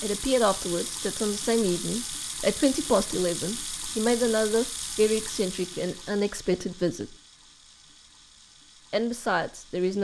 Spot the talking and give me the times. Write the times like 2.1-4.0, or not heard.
0.0-7.2, 8.9-9.9.